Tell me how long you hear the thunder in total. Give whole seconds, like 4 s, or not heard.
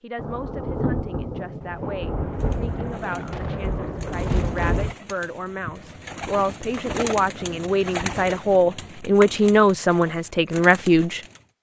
5 s.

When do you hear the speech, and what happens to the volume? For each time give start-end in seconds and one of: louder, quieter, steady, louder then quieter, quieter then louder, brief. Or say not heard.
0.0-11.2 louder.